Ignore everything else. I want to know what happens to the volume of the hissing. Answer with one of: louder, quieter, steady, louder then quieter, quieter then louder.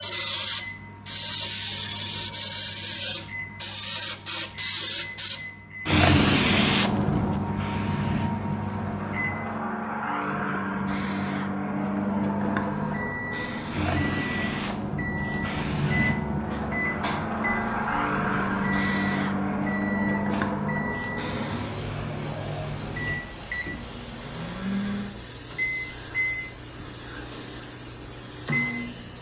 quieter.